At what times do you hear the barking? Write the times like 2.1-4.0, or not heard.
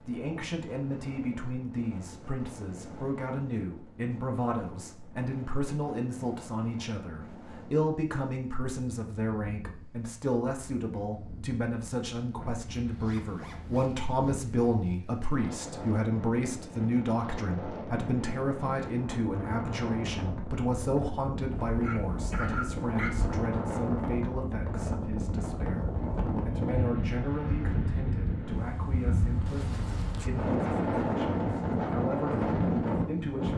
21.6-23.4.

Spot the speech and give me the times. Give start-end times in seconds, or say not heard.
0.0-33.5.